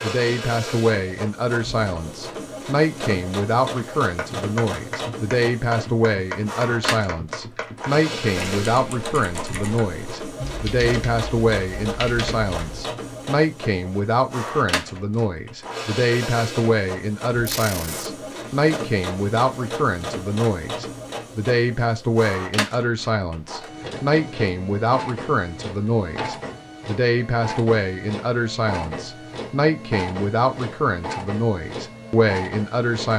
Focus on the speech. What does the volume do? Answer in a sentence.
The volume of the speech stays about the same.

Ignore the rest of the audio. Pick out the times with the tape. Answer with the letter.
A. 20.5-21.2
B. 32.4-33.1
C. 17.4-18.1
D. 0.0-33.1
C.